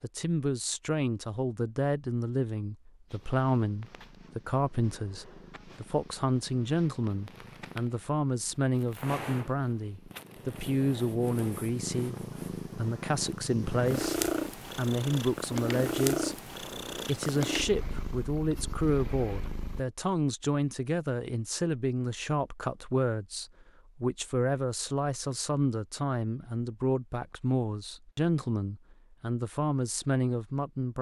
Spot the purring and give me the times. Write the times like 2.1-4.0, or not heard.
3.0-19.9.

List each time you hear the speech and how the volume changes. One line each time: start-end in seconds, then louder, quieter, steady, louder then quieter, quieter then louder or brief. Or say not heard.
0.0-30.9 steady.